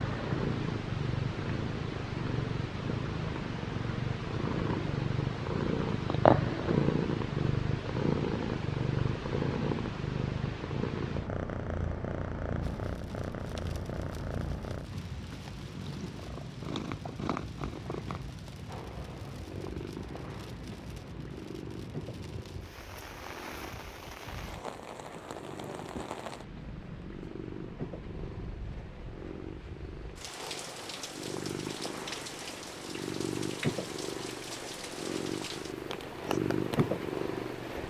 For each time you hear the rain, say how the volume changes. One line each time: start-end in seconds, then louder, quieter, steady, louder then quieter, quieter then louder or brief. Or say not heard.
12.6-37.8 steady.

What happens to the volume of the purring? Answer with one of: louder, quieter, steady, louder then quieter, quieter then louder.
quieter then louder.